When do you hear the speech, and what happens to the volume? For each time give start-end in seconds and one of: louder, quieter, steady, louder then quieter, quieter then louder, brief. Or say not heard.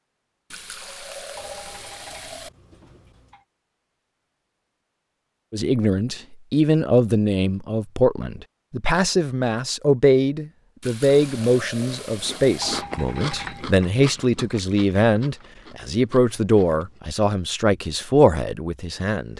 5.5-19.3 steady.